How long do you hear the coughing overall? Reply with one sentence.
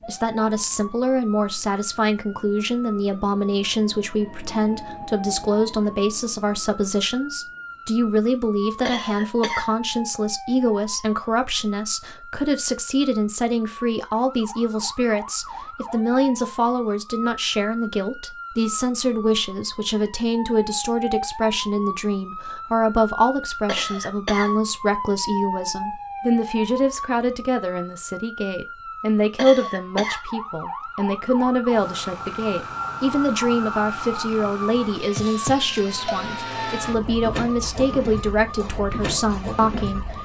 The coughing can be heard for 3 seconds in total.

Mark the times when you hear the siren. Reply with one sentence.
The siren can be heard from 0.0 to 40.2 s.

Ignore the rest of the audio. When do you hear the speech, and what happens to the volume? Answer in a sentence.
You can hear the speech from 0.1 to 40.2 s, at a steady volume.